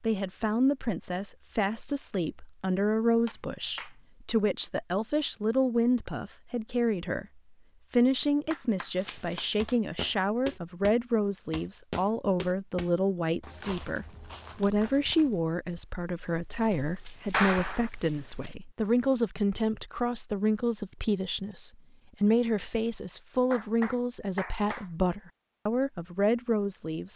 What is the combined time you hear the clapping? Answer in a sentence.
You can hear the clapping for 4 seconds altogether.